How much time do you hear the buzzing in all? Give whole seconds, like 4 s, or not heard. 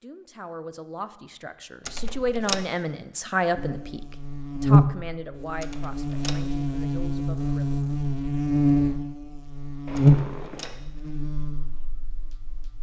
9 s.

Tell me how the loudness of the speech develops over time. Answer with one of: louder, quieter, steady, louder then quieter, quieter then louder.
louder then quieter.